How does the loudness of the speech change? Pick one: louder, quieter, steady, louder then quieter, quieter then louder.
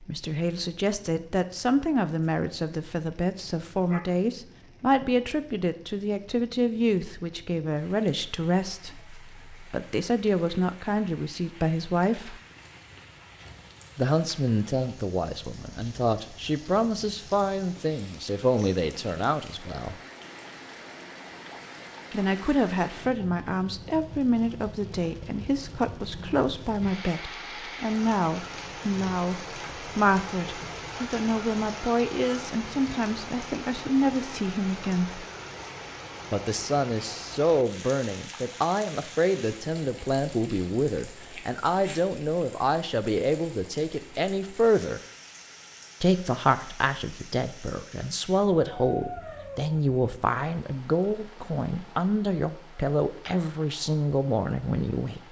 steady.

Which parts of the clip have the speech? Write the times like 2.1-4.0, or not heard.
0.0-12.3, 13.9-19.9, 22.1-35.2, 36.3-45.0, 46.0-55.2.